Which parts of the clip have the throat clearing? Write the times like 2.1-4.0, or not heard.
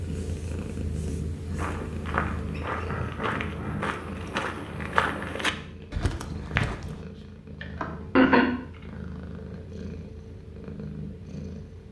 2.7-4.0, 7.6-8.5.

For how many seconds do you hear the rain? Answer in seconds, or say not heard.
not heard.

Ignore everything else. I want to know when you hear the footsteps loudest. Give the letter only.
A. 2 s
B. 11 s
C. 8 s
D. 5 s
D.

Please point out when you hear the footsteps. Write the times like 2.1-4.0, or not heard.
1.5-7.0.